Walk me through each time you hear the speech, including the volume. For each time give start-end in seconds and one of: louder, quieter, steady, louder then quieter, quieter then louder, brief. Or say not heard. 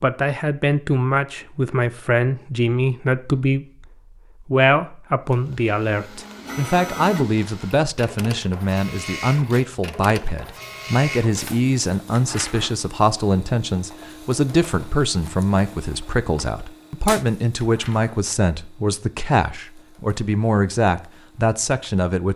0.0-22.3 steady.